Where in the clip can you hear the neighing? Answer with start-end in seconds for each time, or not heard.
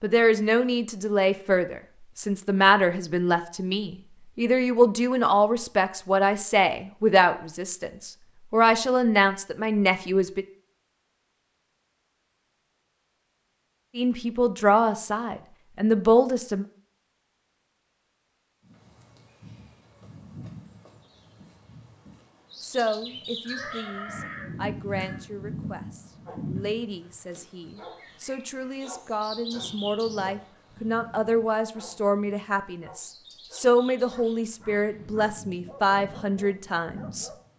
23.4-25.2.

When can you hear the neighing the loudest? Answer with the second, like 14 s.
24 s.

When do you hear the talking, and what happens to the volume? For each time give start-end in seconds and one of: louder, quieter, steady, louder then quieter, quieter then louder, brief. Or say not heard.
0.0-10.4 steady
13.9-16.6 brief
22.6-37.3 louder.